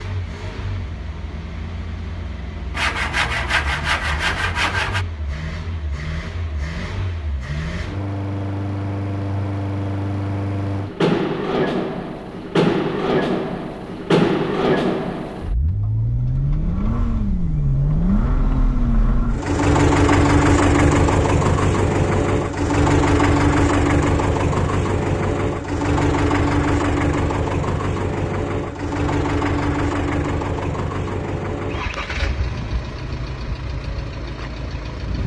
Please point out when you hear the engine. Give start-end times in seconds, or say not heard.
0.0-35.2.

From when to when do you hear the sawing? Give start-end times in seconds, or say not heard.
2.7-5.0.